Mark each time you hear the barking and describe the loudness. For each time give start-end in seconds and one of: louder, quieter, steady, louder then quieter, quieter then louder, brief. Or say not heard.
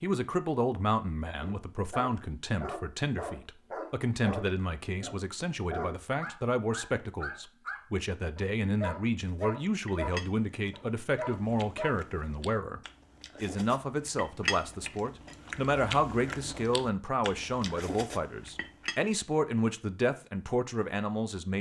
1.4-12.0 steady.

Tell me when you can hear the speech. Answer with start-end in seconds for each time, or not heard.
0.0-12.8, 13.4-21.5.